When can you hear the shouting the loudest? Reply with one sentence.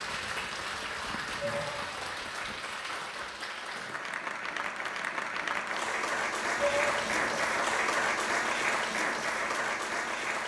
The volume of the shouting peaks at 7 seconds.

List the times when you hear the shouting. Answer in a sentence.
You can hear the shouting from 1.4 to 2.2 s and from 6.5 to 7.5 s.